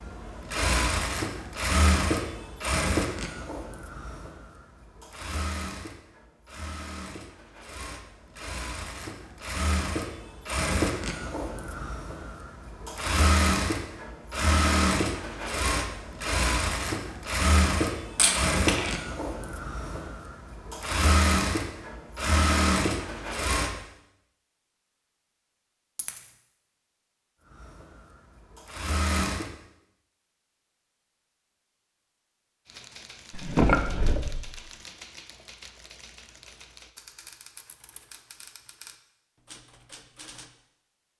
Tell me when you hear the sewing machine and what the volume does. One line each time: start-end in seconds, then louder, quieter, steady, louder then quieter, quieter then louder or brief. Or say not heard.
0.0-23.7 quieter then louder
27.4-29.5 brief.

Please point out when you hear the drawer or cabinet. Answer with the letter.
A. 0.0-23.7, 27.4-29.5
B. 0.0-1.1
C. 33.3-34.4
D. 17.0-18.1
C.